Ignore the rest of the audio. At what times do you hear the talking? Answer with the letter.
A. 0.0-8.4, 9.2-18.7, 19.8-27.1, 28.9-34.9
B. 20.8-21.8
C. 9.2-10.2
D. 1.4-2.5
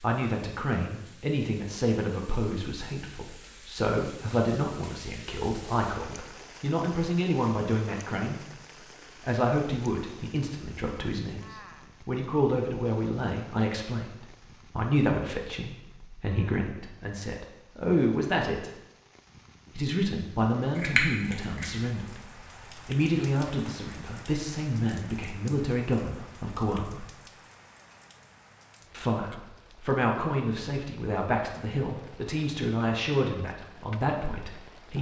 A.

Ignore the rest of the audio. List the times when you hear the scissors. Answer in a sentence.
The scissors can be heard from 20.8 to 21.8 s.